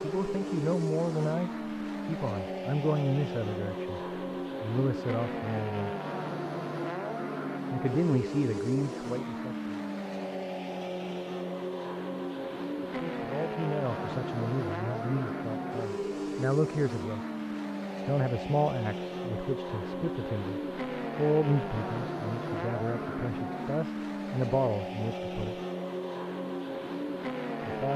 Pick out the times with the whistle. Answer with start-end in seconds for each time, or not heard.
not heard.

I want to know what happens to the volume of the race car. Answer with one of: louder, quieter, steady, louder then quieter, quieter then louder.
steady.